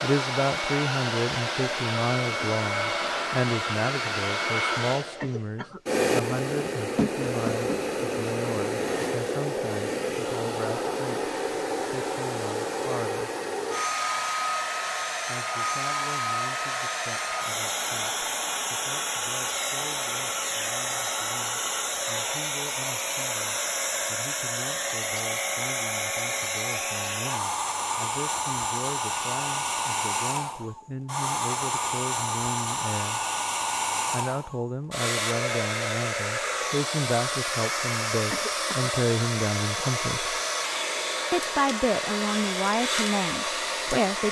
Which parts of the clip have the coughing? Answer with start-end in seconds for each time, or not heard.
5.2-5.8, 38.3-38.9.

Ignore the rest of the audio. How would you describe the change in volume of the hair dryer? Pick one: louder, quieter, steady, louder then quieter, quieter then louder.
steady.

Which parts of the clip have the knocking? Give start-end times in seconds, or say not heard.
7.0-7.8.